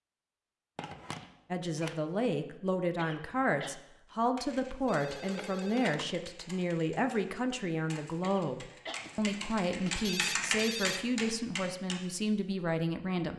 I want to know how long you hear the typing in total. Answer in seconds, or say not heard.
8 s.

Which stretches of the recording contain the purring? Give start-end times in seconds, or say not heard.
not heard.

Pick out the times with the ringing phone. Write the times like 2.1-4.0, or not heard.
0.8-2.0, 4.8-6.1, 9.0-11.0.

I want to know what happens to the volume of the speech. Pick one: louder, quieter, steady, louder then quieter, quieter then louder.
steady.